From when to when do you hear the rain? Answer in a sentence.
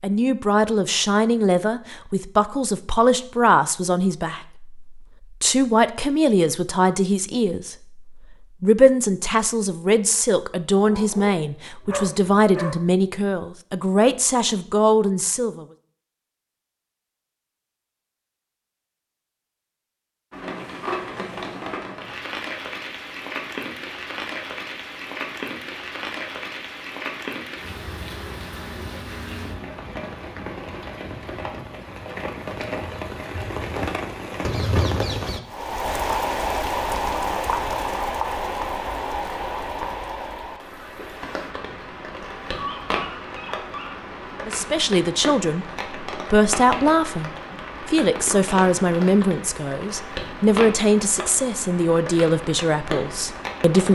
You can hear the rain from 20.3 to 53.9 s.